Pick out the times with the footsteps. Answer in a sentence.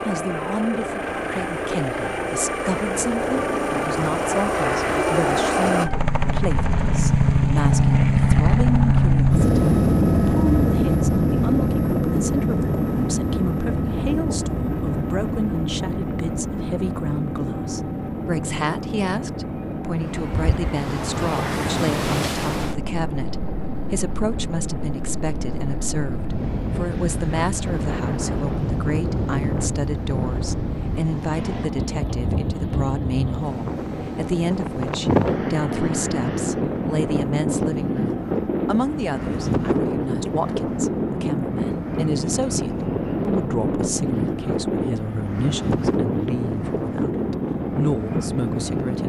You can't hear the footsteps here.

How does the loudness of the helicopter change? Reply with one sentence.
The volume of the helicopter goes down.